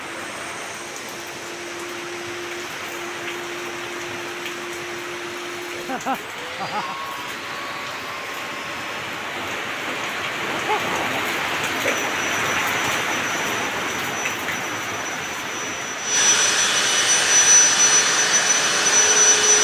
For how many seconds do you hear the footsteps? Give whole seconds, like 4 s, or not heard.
not heard.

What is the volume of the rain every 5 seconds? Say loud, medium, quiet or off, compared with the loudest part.
medium, medium, loud, medium.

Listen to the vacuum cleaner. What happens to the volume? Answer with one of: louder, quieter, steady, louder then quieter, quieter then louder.
louder.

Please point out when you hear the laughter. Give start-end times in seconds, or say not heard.
5.8-7.1, 10.4-11.2.